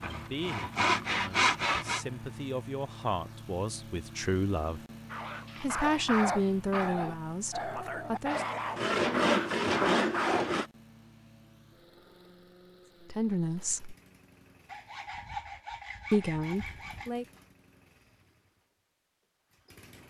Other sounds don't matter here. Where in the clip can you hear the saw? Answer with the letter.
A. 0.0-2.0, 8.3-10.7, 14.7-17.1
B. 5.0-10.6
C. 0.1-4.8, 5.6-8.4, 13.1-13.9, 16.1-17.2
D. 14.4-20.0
A.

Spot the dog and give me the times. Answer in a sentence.
You can hear the dog from 5.0 to 10.6 s.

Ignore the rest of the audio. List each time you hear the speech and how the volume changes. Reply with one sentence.
You can hear the speech from 0.1 to 4.8 s, getting louder; briefly from 5.6 to 8.4 s; briefly from 13.1 to 13.9 s; and briefly from 16.1 to 17.2 s.